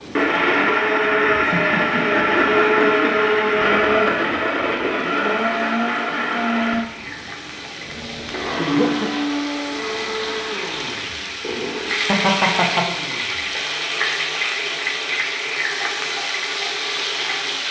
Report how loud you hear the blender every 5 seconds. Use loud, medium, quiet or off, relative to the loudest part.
loud, medium, quiet, quiet.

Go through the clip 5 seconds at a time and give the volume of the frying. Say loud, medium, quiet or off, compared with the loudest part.
quiet, medium, loud, loud.